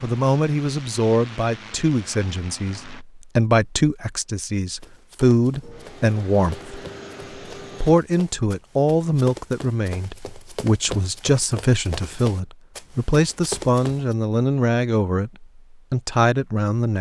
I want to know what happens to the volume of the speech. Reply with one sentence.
The loudness of the speech stays about the same.